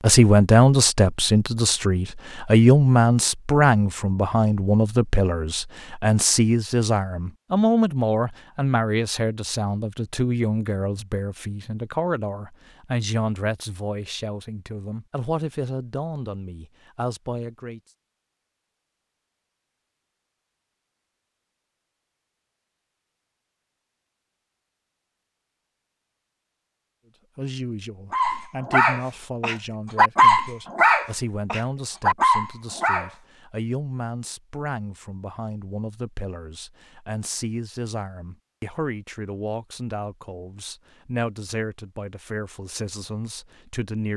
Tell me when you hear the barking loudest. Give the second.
30 s.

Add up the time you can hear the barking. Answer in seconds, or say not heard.
5 s.